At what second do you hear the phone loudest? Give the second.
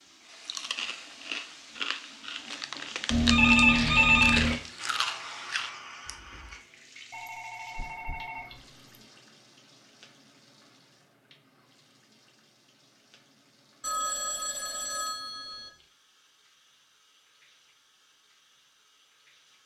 4 s.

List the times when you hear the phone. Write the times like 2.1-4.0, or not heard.
3.1-4.5, 7.1-9.0, 13.8-15.7.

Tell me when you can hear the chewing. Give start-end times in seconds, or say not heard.
0.3-6.5.